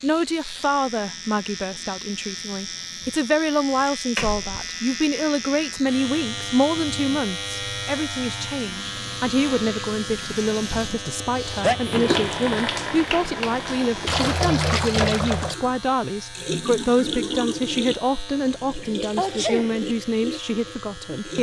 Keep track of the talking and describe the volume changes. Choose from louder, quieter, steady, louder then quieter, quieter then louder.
steady.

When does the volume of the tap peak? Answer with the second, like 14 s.
15 s.